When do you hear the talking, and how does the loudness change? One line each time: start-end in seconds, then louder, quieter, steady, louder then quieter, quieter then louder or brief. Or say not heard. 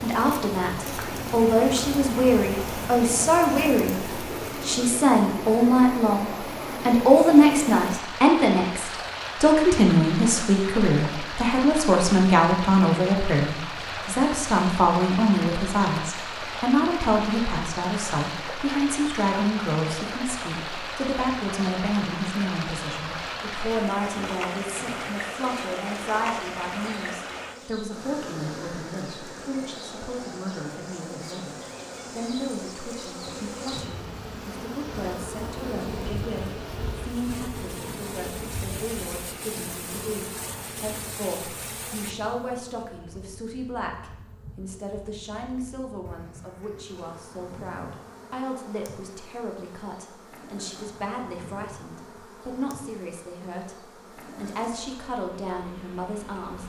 0.0-56.6 quieter.